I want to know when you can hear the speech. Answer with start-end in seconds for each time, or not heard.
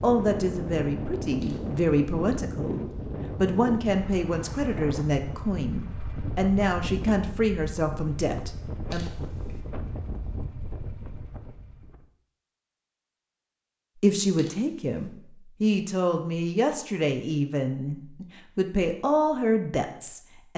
0.0-9.1, 14.0-20.5.